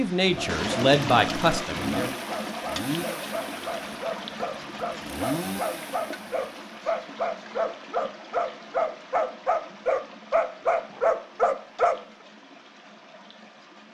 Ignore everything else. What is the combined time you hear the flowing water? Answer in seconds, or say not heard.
14 s.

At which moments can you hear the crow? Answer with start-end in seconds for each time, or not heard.
not heard.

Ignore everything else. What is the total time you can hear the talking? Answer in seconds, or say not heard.
2 s.